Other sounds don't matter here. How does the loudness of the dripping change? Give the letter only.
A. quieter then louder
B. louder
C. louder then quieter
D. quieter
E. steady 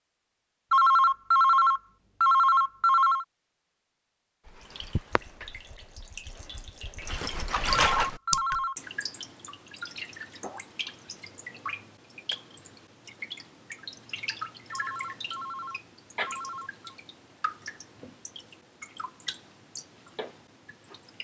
D.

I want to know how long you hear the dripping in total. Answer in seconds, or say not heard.
17 s.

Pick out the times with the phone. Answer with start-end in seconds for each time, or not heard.
0.7-3.2, 7.7-8.8, 14.7-16.9.